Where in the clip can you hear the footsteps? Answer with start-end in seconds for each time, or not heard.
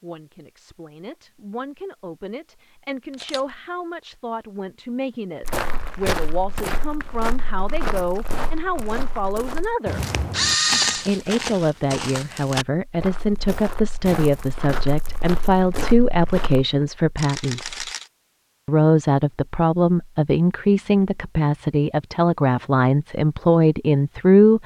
5.4-16.6.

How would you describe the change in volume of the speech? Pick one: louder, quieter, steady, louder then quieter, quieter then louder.
louder.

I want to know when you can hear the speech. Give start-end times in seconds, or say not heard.
0.0-10.0, 10.9-17.9, 18.6-24.6.